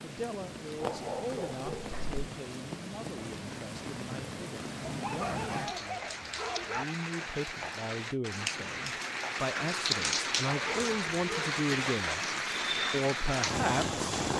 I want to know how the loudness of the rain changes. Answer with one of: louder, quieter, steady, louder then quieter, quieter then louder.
louder.